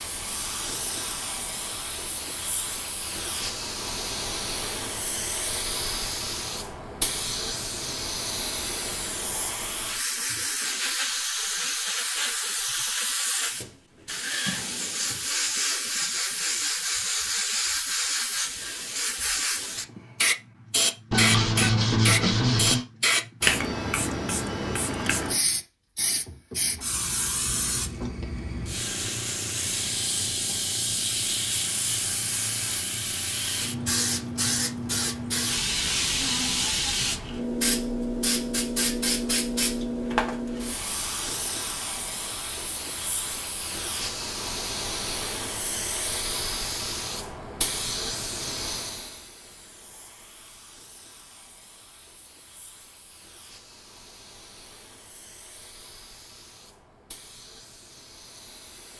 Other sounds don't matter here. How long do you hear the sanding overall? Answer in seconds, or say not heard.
2 s.